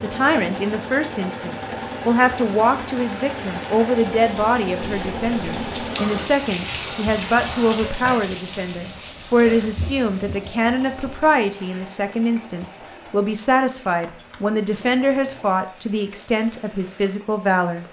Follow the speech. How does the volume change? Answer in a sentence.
The volume of the speech stays about the same.